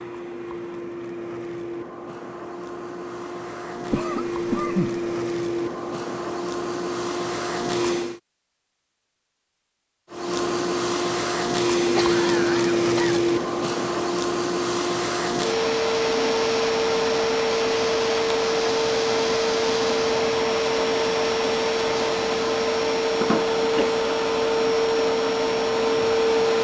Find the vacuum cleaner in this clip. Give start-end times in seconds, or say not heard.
0.0-8.2, 10.1-26.5.